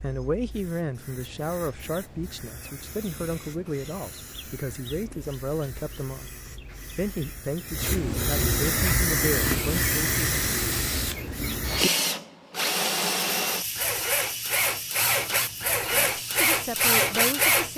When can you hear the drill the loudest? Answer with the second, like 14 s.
17 s.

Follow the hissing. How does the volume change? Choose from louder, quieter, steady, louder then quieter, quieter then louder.
louder then quieter.